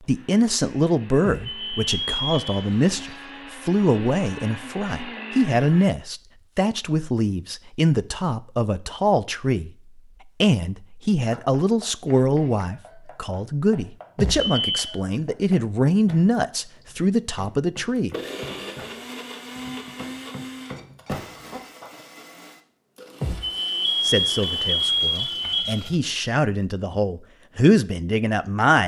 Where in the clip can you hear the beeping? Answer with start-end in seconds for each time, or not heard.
1.2-2.6, 14.2-14.8, 23.2-25.8.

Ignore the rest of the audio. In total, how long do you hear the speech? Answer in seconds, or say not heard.
22 s.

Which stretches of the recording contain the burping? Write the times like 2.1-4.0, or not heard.
not heard.